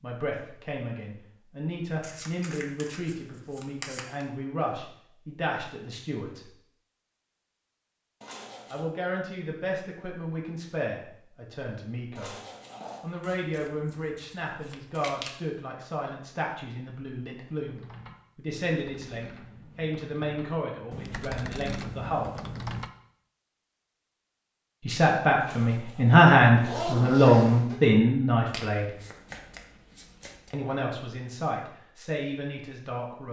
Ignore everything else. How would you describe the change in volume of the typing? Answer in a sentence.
The volume of the typing goes up.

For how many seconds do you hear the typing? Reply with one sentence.
You can hear the typing for 5 seconds altogether.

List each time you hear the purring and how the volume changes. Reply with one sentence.
You can't hear the purring here.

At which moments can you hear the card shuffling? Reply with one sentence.
You can hear the card shuffling from 2.0 to 4.2 s, from 13.2 to 15.3 s and from 28.5 to 30.6 s.